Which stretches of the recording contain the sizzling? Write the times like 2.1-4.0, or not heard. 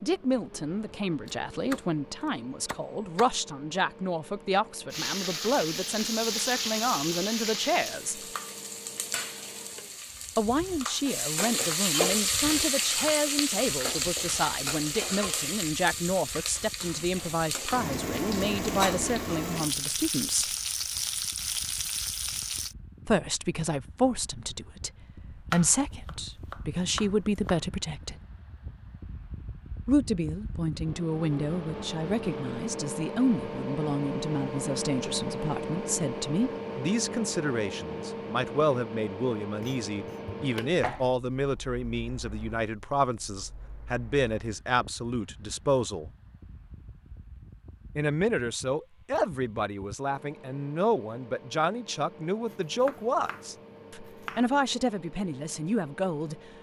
4.9-22.8.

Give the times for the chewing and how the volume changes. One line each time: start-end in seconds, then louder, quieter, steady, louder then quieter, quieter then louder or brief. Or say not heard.
not heard.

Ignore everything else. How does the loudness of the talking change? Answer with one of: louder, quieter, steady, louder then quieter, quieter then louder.
steady.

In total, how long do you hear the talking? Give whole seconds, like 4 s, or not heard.
48 s.